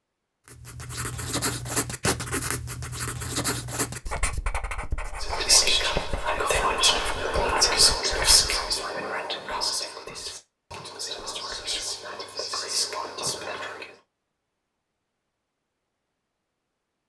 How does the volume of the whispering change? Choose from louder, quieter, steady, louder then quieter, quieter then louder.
quieter.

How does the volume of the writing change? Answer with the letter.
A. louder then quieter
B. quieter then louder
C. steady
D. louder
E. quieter
E.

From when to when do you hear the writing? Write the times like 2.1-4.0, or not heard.
0.5-8.7.